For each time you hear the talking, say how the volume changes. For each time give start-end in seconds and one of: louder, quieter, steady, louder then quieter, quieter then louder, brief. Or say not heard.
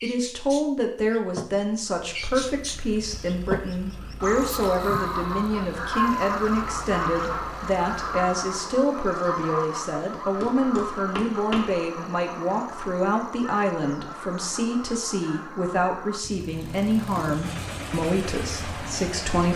0.0-19.5 steady.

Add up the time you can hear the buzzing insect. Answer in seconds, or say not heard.
not heard.